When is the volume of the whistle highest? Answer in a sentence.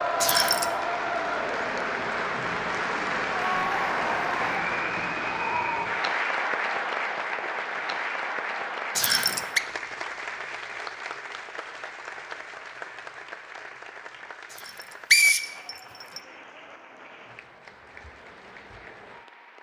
The volume of the whistle peaks at 15 seconds.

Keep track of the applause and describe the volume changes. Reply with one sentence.
The loudness of the applause goes down.